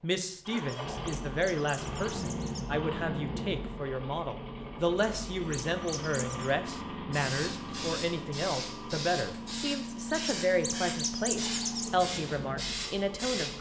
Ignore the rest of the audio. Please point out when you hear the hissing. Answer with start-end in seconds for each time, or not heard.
7.1-13.5.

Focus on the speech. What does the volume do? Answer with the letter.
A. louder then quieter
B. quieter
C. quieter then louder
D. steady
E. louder
D.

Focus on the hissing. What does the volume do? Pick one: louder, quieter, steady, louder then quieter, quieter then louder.
steady.